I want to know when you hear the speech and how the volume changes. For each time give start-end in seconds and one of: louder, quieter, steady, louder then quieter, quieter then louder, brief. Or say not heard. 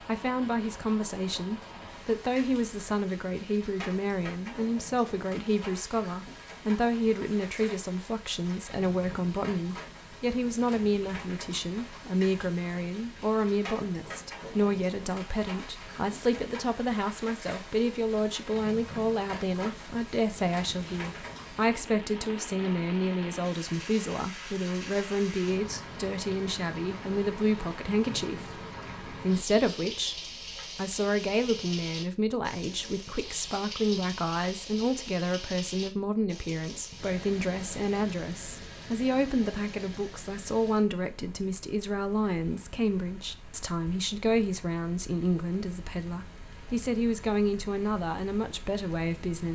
0.1-49.5 steady.